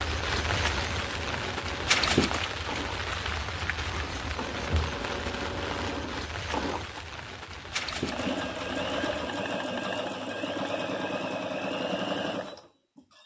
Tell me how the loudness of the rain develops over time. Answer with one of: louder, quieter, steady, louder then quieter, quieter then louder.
quieter.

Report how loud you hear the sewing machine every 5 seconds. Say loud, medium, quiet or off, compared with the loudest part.
medium, loud, loud.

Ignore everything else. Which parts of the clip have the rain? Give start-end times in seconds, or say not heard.
0.0-9.2.